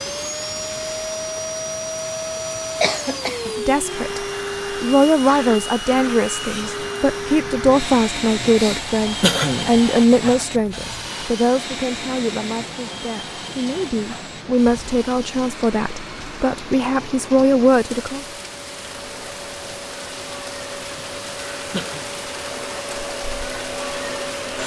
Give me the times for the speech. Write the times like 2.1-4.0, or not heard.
3.5-18.2.